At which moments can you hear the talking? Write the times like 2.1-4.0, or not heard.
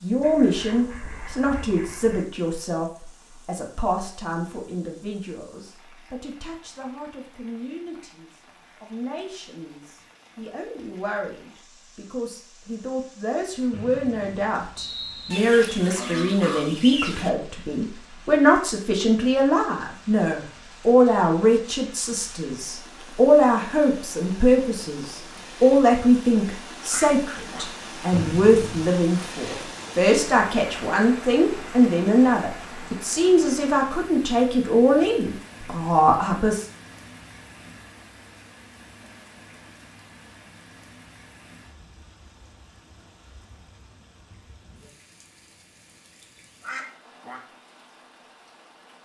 0.0-36.6.